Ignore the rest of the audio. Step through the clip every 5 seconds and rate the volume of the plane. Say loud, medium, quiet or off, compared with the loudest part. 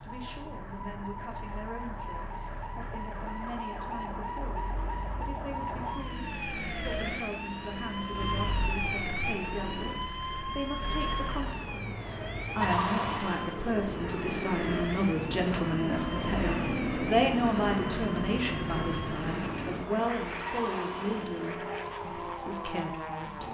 quiet, quiet, medium, loud, medium.